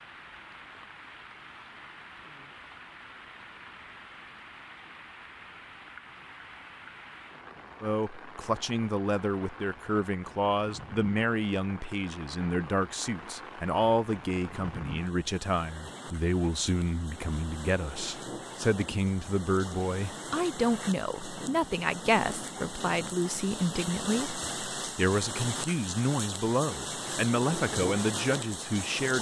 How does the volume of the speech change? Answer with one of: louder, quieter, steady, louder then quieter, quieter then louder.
steady.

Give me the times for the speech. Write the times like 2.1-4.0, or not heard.
7.8-29.1.